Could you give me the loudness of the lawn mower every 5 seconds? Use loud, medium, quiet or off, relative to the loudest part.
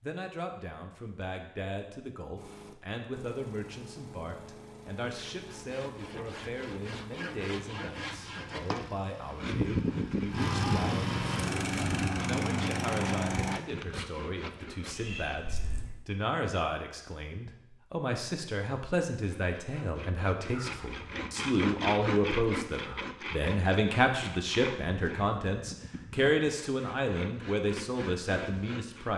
quiet, quiet, loud, off, off, off.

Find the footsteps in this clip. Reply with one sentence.
You can't hear the footsteps here.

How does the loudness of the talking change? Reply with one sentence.
The volume of the talking goes up.